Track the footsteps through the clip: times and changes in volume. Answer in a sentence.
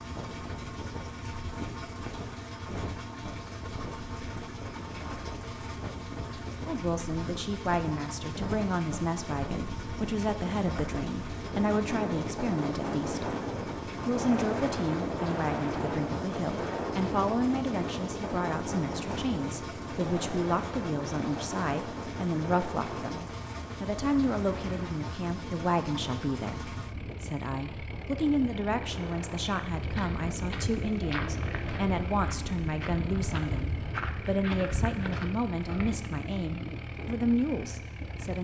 The footsteps can be heard from 29.7 to 35.9 s, at a steady volume.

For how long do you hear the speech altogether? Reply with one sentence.
You can hear the speech for 32 seconds altogether.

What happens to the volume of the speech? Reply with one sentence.
The loudness of the speech stays about the same.